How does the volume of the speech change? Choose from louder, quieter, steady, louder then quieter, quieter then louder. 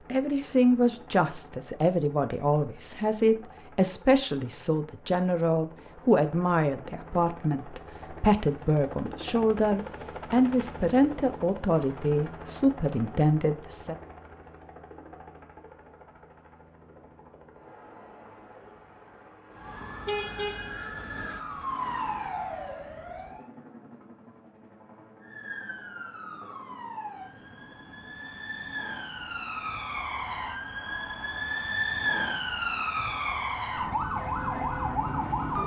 steady.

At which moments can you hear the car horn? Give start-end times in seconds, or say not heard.
20.1-20.9.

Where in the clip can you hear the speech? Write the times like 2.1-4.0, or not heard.
0.1-13.9.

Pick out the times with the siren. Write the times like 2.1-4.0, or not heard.
19.5-23.4, 25.2-35.6.